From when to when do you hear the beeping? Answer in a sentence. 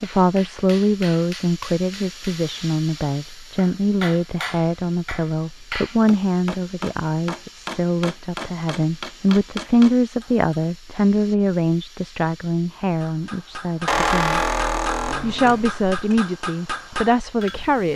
You can't hear the beeping here.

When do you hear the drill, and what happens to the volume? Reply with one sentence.
The drill can't be heard in this clip.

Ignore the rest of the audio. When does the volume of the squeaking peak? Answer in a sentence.
The loudest moment of the squeaking is at 14 seconds.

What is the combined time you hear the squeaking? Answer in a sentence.
The squeaking can be heard for 2 seconds in total.